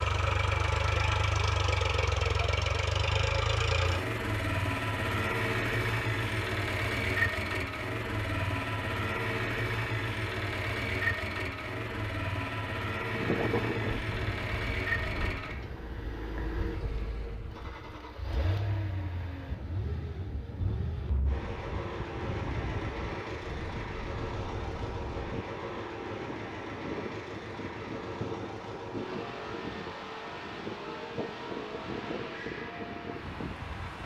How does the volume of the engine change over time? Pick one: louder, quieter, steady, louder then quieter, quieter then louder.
quieter.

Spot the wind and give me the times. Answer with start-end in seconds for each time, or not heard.
13.1-34.0.